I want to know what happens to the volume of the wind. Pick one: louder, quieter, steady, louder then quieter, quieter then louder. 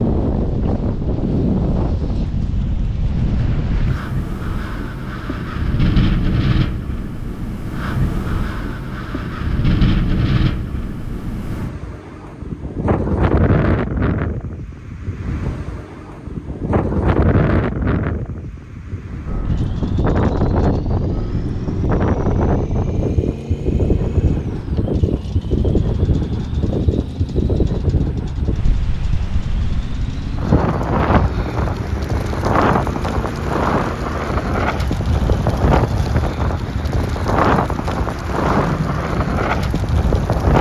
steady.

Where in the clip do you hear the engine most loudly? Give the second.
39 s.